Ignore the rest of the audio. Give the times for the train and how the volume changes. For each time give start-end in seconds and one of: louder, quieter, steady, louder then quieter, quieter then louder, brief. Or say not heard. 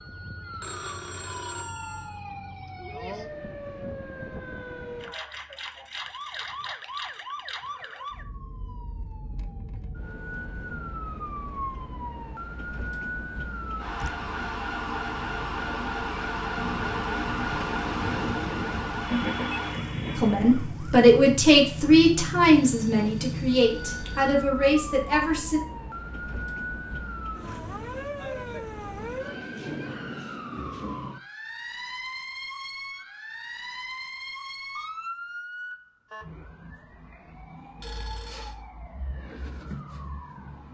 13.7-20.8 louder.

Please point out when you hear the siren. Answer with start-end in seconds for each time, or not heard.
0.0-40.7.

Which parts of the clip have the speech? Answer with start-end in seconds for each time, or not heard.
20.1-25.6.